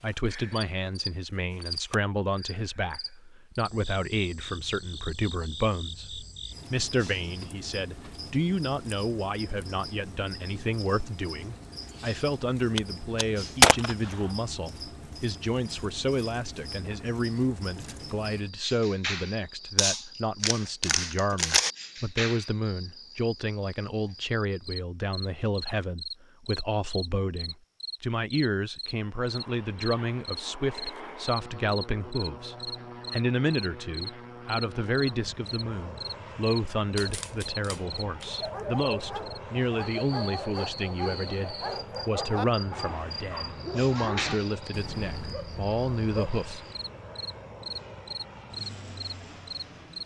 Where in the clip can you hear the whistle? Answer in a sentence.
You can't hear the whistle here.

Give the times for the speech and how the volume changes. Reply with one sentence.
The speech can be heard from 0.0 to 46.6 s, at a steady volume.